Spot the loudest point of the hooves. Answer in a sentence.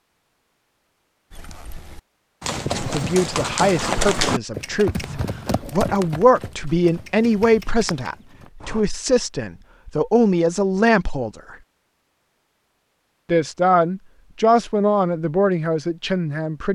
The volume of the hooves peaks at 4 seconds.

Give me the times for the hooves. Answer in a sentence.
You can hear the hooves from 1.3 to 8.8 s.